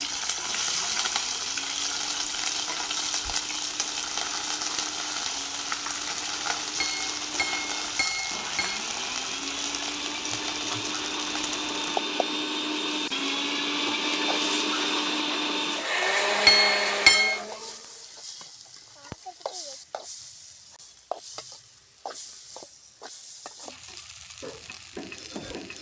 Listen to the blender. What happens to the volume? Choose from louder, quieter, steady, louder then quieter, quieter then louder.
louder.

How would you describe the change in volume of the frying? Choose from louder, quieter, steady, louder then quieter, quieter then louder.
quieter.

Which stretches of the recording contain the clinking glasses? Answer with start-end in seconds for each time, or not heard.
6.8-8.8, 16.4-17.4.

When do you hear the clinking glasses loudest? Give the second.
17 s.